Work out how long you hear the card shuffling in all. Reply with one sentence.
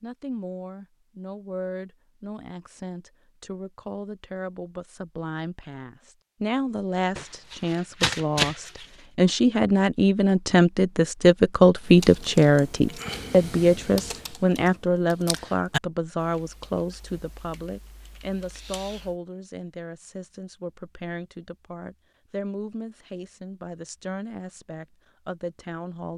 You can hear the card shuffling for 2 seconds altogether.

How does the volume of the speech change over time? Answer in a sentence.
The loudness of the speech goes up, then down.